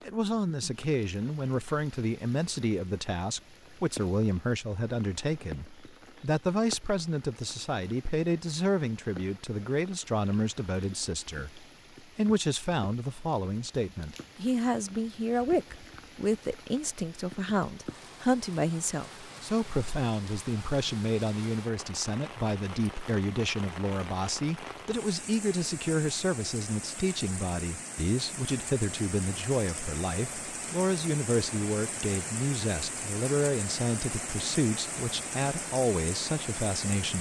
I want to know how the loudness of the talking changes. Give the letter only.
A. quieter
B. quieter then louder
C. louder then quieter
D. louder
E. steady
E.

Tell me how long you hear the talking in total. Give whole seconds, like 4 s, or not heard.
37 s.